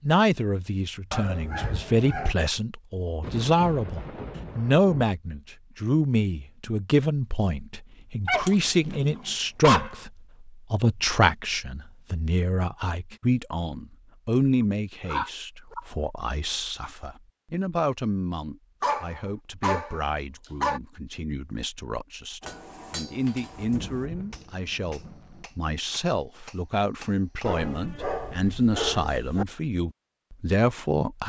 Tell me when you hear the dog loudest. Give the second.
10 s.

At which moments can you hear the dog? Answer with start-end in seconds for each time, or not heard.
1.1-2.4, 8.2-10.0, 15.1-15.8, 18.8-20.8, 27.4-29.4.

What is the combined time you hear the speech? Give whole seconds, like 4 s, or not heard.
31 s.